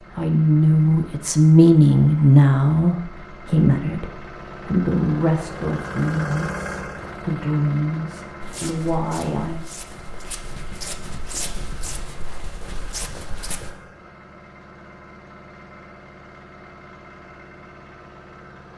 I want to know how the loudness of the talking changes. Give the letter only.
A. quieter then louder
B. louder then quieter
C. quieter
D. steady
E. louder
C.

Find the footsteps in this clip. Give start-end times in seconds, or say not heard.
8.4-13.7.